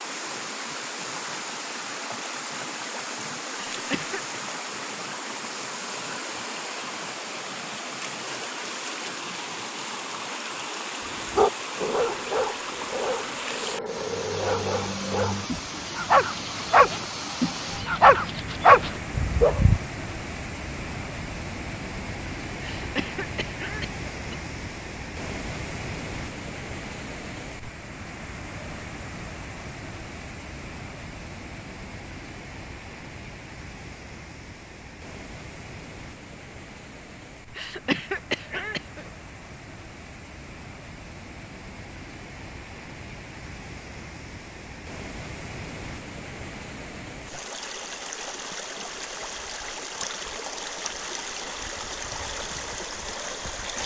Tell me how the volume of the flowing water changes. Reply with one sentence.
The loudness of the flowing water goes down, then up.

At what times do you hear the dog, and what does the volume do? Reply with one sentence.
You can hear the dog from 11.3 to 19.8 s, getting louder.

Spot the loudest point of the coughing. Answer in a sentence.
The loudest moment of the coughing is at 38 seconds.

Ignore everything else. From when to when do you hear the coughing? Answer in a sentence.
The coughing can be heard from 3.5 to 4.2 s, from 22.6 to 24.4 s and from 37.5 to 39.1 s.